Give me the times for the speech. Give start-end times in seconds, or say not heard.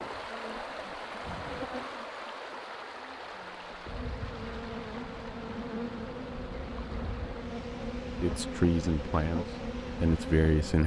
8.2-10.8.